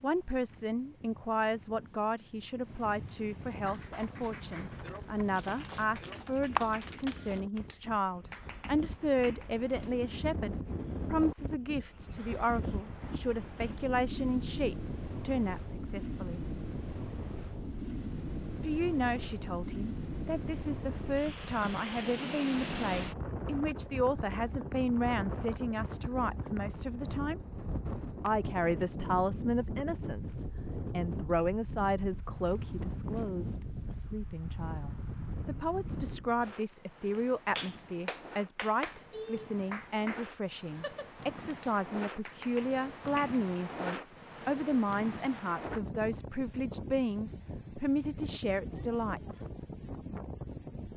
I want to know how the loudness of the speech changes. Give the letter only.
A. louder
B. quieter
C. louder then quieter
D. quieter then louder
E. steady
E.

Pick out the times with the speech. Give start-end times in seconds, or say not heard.
0.0-16.4, 18.6-27.4, 28.2-49.5.